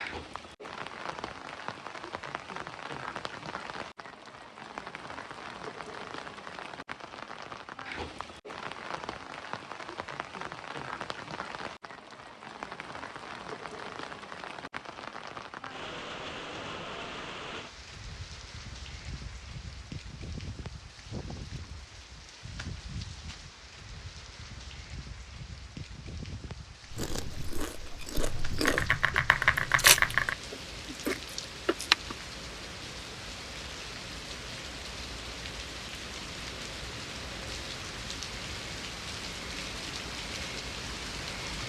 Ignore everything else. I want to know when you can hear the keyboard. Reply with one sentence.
You can hear the keyboard from 28.1 to 30.4 s.